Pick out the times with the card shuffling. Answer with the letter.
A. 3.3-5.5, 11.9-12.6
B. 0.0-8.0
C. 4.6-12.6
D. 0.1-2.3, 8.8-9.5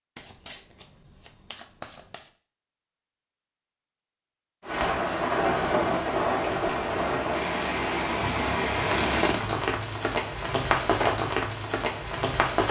D.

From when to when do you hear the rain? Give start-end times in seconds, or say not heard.
4.6-12.6.